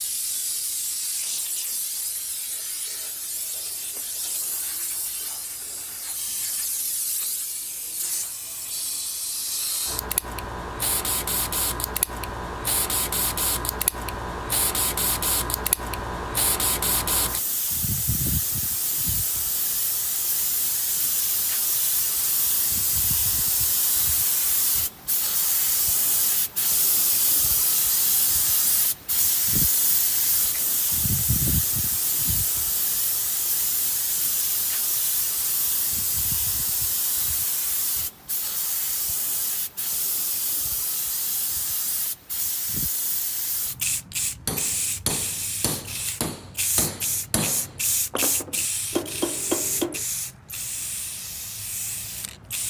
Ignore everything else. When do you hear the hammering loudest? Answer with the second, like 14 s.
50 s.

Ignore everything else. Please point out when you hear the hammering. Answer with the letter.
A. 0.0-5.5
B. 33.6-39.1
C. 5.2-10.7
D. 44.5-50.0
D.